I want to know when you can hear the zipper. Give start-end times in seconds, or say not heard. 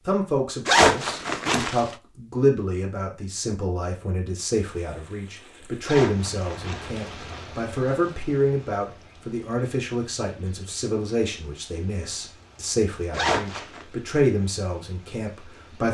0.7-1.9, 5.8-7.5, 13.1-13.8.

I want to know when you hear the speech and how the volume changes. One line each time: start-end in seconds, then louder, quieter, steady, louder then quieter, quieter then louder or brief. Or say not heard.
0.1-15.9 steady.